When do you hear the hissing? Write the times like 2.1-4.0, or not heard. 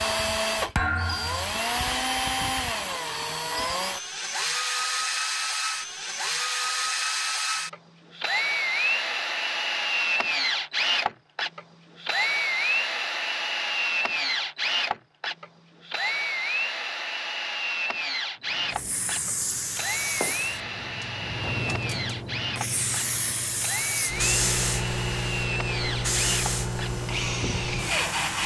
18.5-28.4.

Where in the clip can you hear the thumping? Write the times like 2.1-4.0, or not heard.
0.8-1.6.